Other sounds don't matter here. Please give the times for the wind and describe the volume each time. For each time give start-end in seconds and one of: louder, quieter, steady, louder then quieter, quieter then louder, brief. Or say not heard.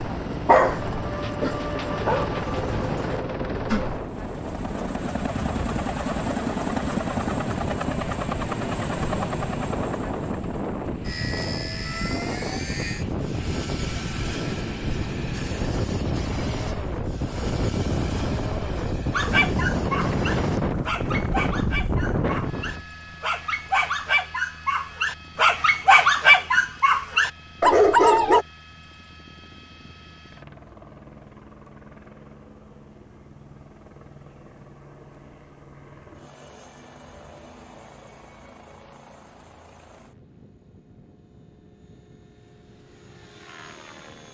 0.0-22.9 louder.